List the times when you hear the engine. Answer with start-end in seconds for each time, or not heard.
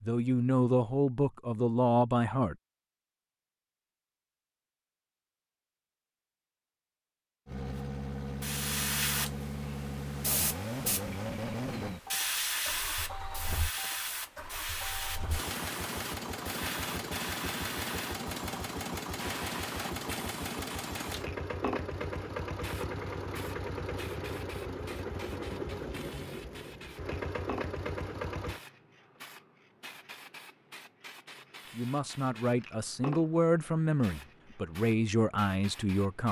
7.5-28.6.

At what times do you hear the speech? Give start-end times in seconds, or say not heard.
0.0-2.5, 31.7-36.2.